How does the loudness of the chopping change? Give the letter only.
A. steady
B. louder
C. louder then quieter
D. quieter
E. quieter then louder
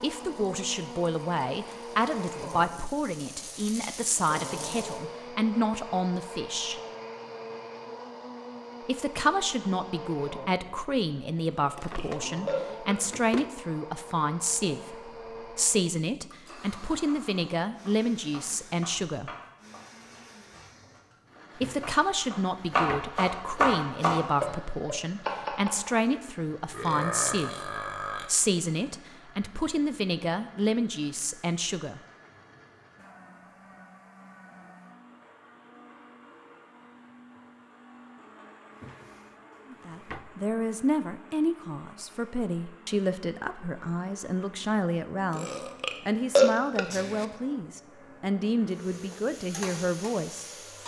B.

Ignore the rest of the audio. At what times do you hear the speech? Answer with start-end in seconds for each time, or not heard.
0.0-6.8, 8.8-19.3, 21.6-32.0, 39.7-50.5.